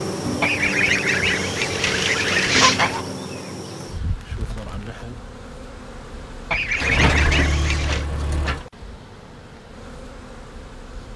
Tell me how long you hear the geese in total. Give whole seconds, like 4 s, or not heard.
4 s.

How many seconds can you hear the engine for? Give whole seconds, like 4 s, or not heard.
2 s.